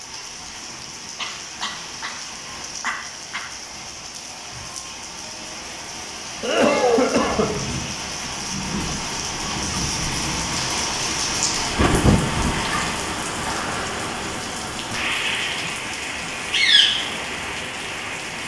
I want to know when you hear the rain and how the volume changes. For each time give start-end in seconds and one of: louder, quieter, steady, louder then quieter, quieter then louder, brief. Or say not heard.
0.0-18.4 louder.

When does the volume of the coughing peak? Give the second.
7 s.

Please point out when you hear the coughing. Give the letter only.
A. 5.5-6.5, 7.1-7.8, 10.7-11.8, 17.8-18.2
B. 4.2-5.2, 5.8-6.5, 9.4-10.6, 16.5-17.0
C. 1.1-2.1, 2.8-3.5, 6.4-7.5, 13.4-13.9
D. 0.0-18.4
C.